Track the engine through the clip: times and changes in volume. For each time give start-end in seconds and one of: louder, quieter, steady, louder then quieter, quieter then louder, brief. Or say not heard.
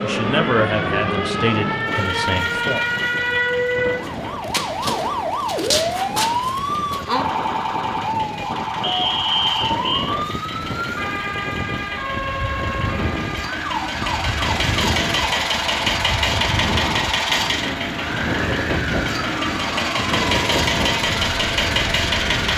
0.0-22.5 quieter then louder.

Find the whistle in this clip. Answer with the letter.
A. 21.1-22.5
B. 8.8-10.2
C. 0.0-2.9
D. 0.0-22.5
B.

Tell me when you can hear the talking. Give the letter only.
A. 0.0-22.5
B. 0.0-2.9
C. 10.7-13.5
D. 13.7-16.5
B.